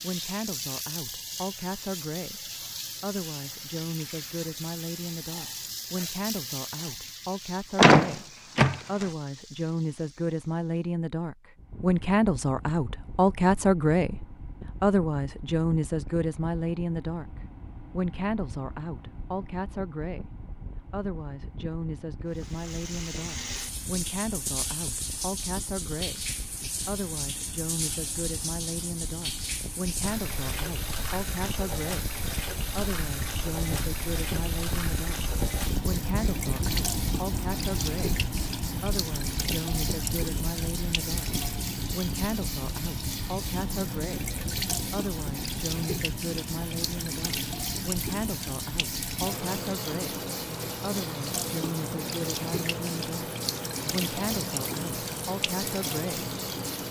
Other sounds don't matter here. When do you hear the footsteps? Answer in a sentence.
The footsteps can't be heard in this clip.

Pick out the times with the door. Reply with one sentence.
The door can be heard from 7.8 to 9.1 s.